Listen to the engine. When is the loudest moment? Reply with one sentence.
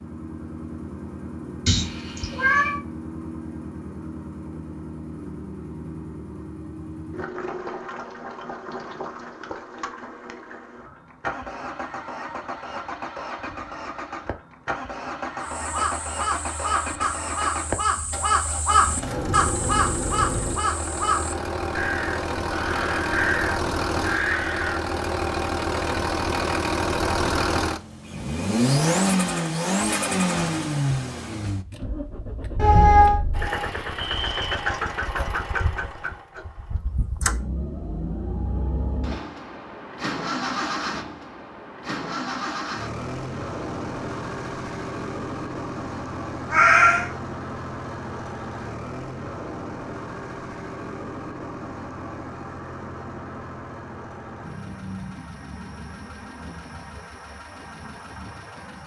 The loudest moment of the engine is at 29 seconds.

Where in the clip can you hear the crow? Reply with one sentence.
The crow can be heard from 15.4 to 24.9 s.